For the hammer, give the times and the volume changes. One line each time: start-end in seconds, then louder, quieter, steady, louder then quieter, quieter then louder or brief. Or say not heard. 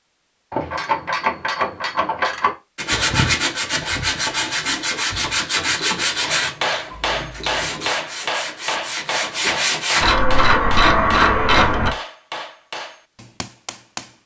6.2-14.2 quieter.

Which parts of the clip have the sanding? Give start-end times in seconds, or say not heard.
2.8-10.2.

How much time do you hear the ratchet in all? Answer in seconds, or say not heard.
6 s.